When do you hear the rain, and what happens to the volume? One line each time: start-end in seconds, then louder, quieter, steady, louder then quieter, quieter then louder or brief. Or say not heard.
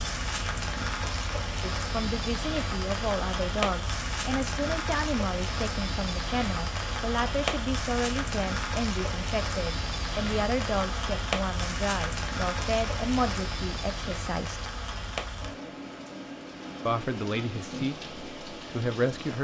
0.0-19.3 quieter.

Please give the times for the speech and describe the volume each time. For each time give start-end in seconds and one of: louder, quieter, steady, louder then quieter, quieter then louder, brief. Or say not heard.
1.6-14.7 steady
16.9-19.3 brief.